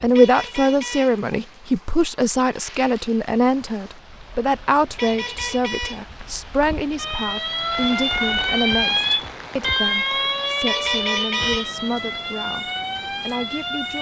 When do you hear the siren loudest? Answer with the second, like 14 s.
9 s.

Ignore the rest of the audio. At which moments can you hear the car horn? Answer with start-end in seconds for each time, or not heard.
0.1-1.1, 5.0-6.0, 10.7-11.7.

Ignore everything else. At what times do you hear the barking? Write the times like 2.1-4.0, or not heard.
not heard.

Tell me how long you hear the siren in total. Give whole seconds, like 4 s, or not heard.
7 s.